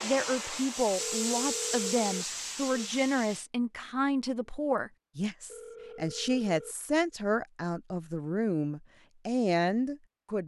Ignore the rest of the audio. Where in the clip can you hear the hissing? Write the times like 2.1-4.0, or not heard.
0.0-3.5.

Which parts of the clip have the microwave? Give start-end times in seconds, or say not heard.
not heard.